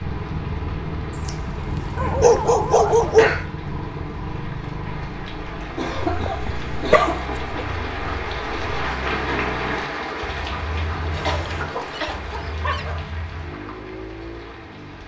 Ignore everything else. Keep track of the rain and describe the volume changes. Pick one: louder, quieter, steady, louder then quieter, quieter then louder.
louder then quieter.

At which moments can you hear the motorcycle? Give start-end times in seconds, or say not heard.
0.0-15.0.